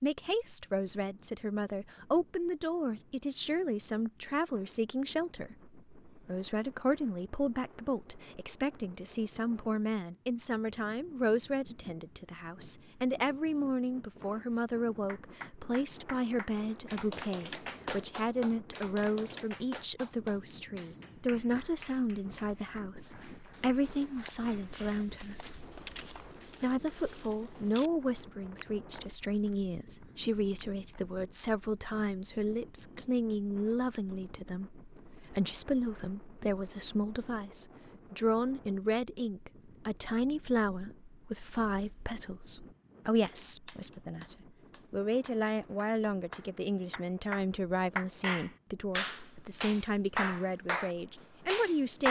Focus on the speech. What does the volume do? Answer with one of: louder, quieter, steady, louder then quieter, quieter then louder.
steady.